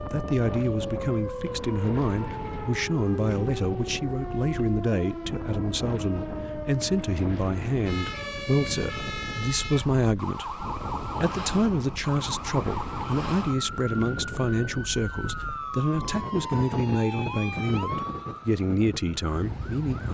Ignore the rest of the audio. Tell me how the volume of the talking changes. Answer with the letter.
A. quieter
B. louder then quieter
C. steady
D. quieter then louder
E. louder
C.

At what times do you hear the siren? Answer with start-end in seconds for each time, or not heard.
0.0-20.0.